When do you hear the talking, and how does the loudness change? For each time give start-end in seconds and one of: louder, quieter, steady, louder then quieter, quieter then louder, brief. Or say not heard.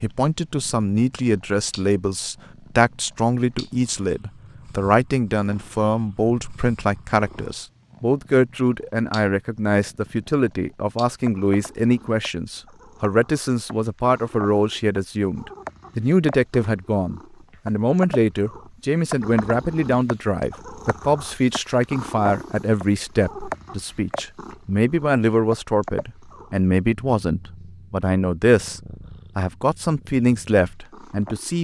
0.0-31.5 steady.